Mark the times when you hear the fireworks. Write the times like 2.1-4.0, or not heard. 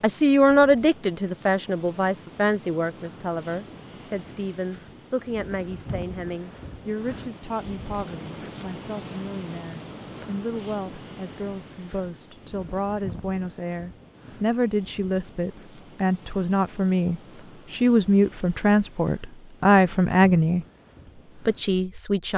not heard.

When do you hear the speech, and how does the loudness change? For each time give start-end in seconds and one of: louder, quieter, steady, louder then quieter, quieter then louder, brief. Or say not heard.
0.0-20.6 quieter then louder
21.4-22.3 brief.